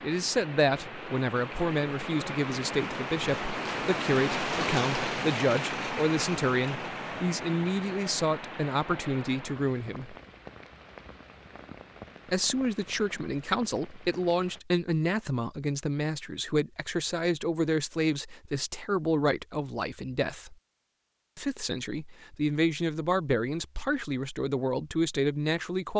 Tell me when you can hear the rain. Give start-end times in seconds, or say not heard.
0.0-14.6.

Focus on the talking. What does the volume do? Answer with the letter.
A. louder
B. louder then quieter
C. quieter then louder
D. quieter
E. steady
E.